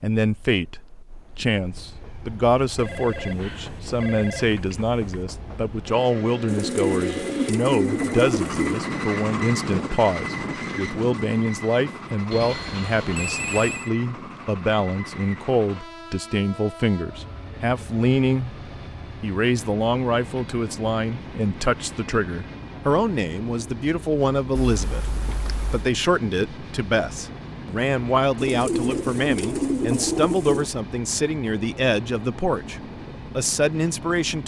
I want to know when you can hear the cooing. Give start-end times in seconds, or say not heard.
6.5-8.9, 28.4-30.7.